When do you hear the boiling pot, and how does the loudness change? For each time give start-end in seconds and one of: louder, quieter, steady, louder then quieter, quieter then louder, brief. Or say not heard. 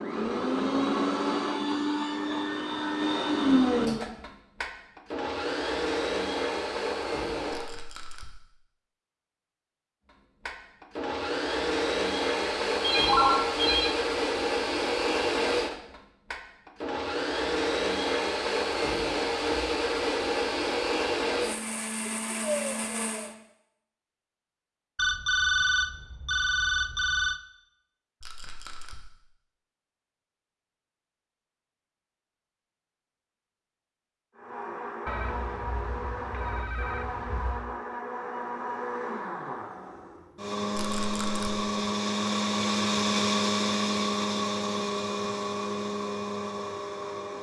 not heard.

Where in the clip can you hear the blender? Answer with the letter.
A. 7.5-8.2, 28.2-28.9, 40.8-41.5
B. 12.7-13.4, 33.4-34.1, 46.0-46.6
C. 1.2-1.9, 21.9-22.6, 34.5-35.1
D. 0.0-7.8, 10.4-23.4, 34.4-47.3
D.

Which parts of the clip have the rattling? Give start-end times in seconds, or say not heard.
7.5-8.2, 28.2-28.9, 40.8-41.5.